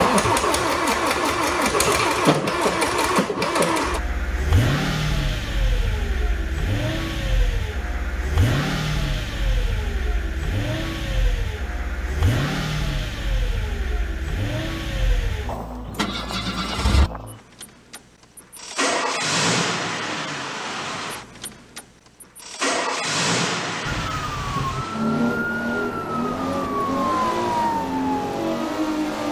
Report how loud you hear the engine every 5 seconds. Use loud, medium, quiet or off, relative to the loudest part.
loud, medium, medium, medium, medium, medium.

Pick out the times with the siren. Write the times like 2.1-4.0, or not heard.
23.9-29.2.